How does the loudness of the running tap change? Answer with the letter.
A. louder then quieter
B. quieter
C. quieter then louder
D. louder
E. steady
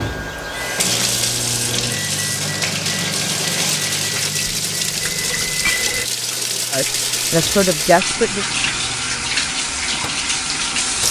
E.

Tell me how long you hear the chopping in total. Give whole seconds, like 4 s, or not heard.
not heard.